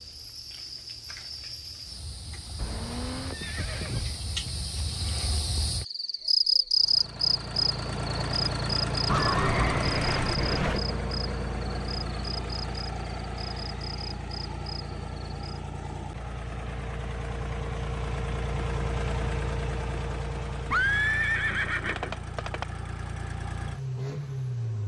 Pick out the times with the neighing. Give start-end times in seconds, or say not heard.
2.5-4.1, 9.1-10.8, 20.7-22.6.